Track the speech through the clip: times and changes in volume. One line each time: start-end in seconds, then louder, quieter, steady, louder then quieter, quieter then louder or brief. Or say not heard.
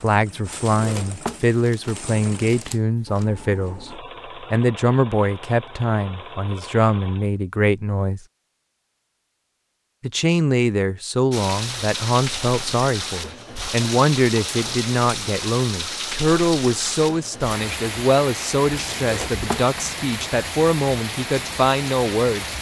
0.0-8.2 steady
10.0-22.5 steady.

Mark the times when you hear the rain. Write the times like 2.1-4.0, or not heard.
11.3-22.5.